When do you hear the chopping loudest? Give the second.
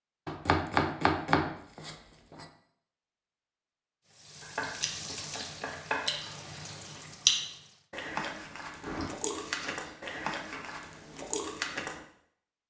1 s.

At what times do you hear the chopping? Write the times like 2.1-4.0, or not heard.
0.2-2.5, 4.4-6.3, 8.8-10.8.